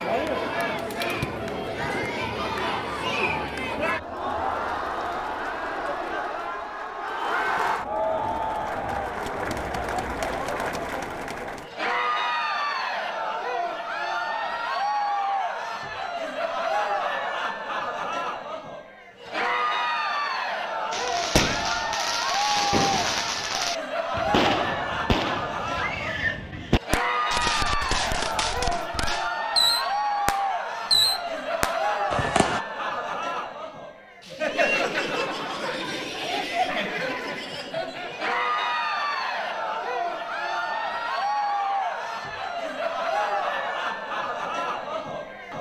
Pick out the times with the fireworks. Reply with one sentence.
The fireworks can be heard from 20.9 to 32.6 s.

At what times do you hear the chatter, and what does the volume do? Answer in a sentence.
The chatter can be heard from 0.0 to 45.5 s, at a steady volume.